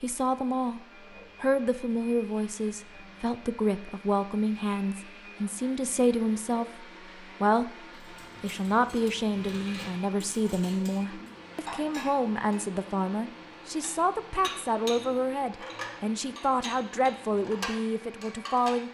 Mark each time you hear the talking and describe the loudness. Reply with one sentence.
You can hear the talking briefly from 0.0 to 0.8 s; from 1.4 to 7.7 s, at a steady volume; and from 8.4 to 18.9 s, at a steady volume.